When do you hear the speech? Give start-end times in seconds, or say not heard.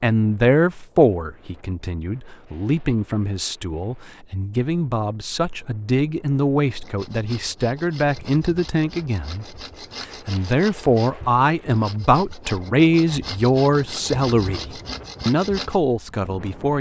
0.0-16.7.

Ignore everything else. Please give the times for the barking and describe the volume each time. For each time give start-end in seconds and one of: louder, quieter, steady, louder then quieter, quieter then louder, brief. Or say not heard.
not heard.